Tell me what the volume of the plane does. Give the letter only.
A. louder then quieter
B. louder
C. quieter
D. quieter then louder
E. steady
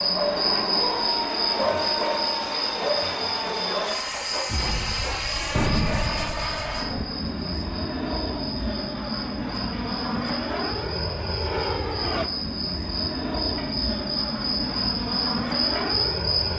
E.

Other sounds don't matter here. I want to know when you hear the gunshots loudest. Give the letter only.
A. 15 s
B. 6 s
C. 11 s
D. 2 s
B.